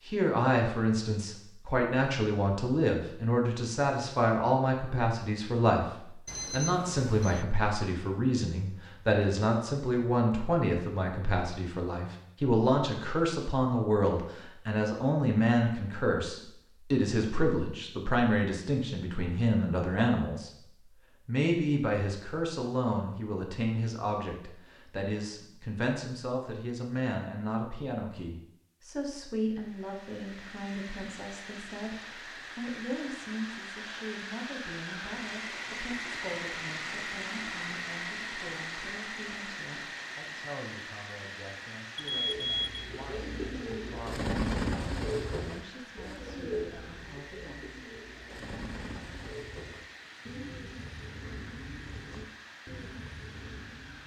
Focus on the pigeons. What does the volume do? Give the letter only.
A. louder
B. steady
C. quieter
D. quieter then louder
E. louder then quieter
C.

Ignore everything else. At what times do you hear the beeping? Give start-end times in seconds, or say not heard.
6.2-7.5, 42.0-42.8.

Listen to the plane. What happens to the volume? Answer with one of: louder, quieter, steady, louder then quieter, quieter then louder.
louder then quieter.